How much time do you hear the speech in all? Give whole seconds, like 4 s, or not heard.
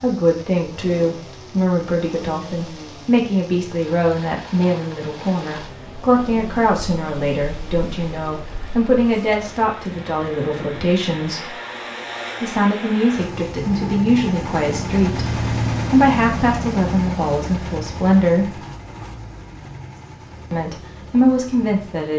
19 s.